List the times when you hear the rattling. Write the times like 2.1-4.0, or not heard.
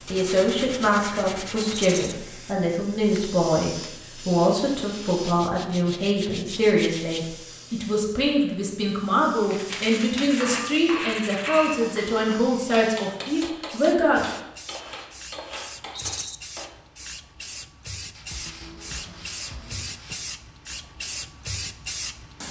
1.7-2.1, 15.9-16.4.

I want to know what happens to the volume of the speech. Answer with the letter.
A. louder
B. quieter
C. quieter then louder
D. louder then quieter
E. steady
E.